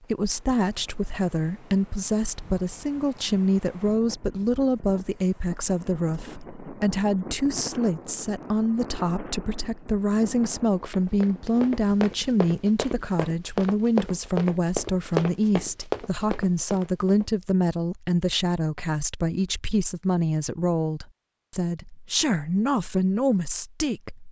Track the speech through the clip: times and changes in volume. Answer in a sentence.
The speech can be heard from 0.1 to 24.2 s, at a steady volume.